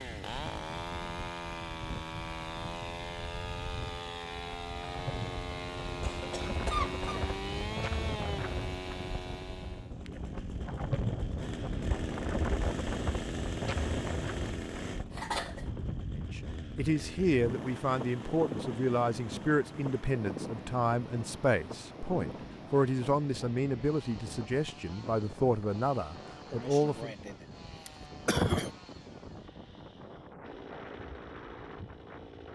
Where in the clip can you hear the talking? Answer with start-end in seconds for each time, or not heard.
16.1-27.1.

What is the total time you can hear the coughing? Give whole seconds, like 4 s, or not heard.
4 s.